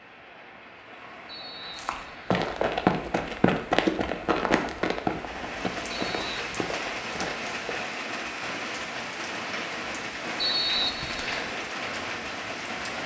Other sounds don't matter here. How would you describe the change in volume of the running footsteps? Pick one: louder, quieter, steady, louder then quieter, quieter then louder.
quieter.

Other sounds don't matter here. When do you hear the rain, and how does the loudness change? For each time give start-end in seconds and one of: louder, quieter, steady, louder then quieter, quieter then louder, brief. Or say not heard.
0.0-13.0 louder.